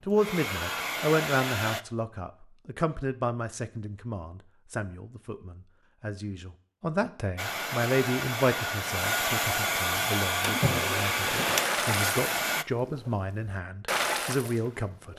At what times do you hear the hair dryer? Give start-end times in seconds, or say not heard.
0.0-1.9, 7.3-12.7.